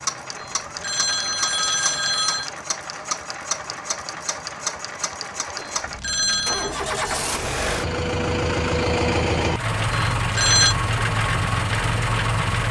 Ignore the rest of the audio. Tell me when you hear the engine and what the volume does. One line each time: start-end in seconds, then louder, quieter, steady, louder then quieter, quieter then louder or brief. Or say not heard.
0.0-12.6 louder.